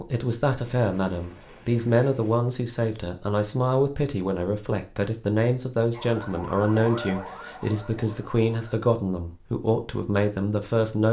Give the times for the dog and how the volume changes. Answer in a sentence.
The dog can't be heard in this clip.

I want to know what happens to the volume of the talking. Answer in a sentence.
The volume of the talking stays about the same.